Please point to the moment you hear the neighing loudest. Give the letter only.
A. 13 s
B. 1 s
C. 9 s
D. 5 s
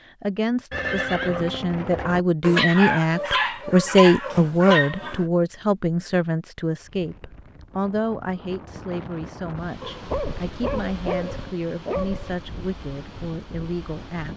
B.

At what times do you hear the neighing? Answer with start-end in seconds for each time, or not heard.
0.7-2.2.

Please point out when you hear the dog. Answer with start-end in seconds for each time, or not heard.
2.4-5.2, 9.8-12.3.